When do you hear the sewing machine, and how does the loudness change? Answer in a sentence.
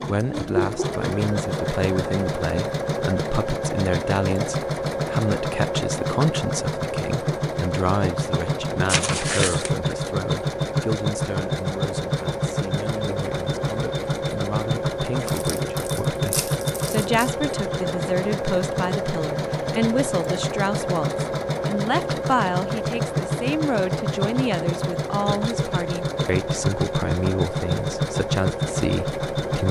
The sewing machine can be heard from 0.0 to 29.6 s, at a steady volume.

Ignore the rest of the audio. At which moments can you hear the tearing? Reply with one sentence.
You can hear the tearing from 8.8 to 9.7 s and from 15.2 to 17.3 s.